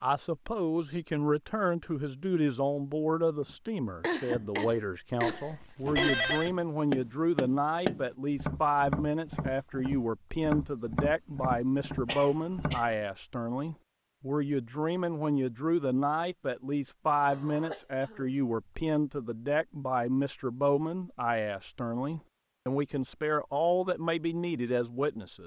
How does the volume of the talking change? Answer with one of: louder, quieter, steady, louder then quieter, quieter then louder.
steady.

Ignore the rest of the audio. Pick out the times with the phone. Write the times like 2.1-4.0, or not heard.
5.3-6.5.